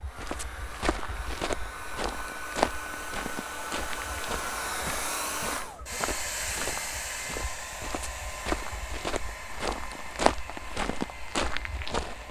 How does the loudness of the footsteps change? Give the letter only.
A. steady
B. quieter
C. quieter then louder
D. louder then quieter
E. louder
C.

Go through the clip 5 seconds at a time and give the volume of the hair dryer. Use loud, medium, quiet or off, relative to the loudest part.
loud, loud, medium.